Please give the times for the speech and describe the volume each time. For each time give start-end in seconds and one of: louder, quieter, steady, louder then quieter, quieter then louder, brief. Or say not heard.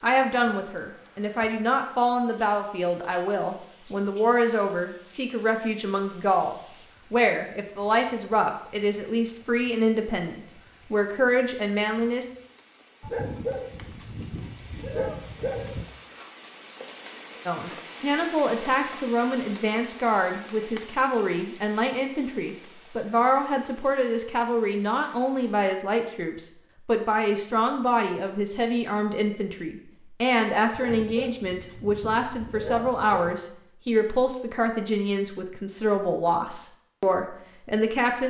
0.0-12.2 steady
17.4-38.2 steady.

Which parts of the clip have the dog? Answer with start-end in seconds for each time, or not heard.
13.0-15.8, 30.7-33.4.